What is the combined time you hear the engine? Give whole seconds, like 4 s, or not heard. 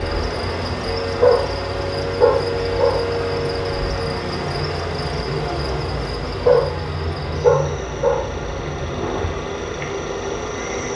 11 s.